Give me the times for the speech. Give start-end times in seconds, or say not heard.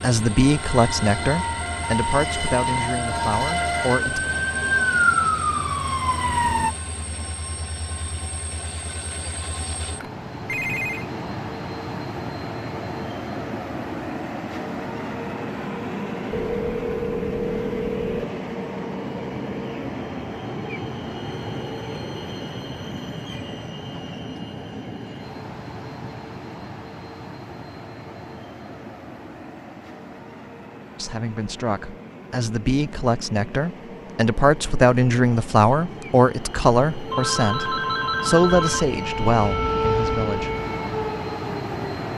0.0-4.2, 30.9-40.5.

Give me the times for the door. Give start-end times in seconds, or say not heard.
not heard.